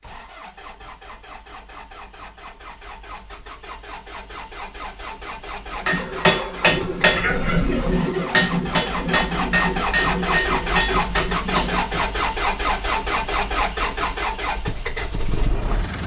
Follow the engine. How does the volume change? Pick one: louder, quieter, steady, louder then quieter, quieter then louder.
louder.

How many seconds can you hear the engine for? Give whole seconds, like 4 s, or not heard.
16 s.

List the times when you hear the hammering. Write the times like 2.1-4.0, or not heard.
5.8-12.1.